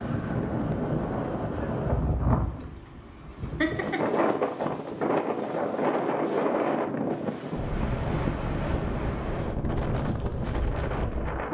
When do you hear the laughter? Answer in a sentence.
The laughter can be heard from 3.6 to 4.2 s.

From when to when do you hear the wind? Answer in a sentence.
The wind can be heard from 0.0 to 11.5 s.